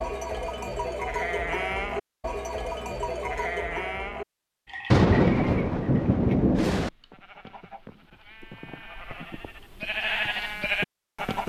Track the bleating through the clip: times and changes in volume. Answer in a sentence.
The bleating can be heard from 0.0 to 11.4 s, getting quieter then louder.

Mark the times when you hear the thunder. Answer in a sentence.
You can hear the thunder from 4.9 to 6.9 s.